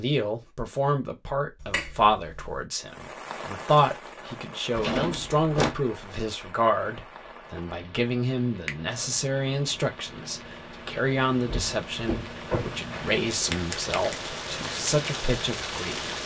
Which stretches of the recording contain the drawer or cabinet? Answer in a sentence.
The drawer or cabinet can be heard from 4.8 to 5.8 s and from 11.4 to 12.8 s.